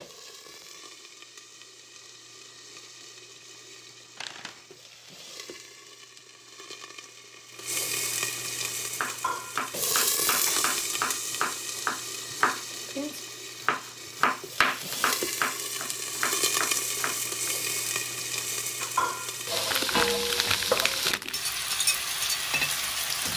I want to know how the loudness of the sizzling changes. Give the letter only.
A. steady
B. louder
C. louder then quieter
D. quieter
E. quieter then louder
B.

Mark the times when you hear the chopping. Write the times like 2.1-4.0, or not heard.
8.9-17.5.